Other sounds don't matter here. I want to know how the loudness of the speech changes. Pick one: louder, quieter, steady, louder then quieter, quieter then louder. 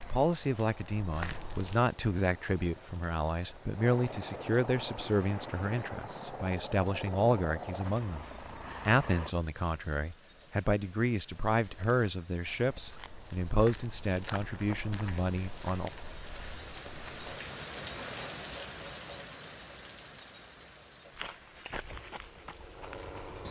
steady.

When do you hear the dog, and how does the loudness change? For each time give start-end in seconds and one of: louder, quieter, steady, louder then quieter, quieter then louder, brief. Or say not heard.
not heard.